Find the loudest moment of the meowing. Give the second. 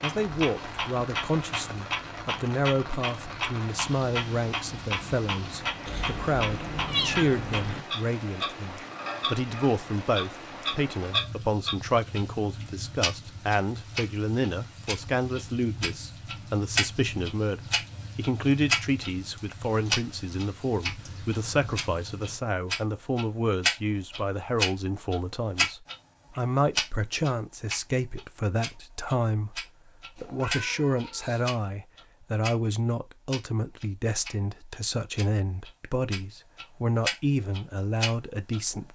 7 s.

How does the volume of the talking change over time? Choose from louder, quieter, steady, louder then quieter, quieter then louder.
steady.